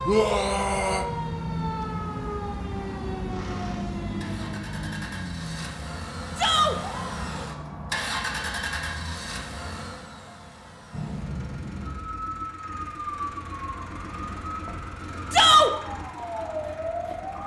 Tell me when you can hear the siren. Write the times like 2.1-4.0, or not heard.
0.0-9.2, 10.9-17.4.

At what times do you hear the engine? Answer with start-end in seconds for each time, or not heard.
3.3-17.4.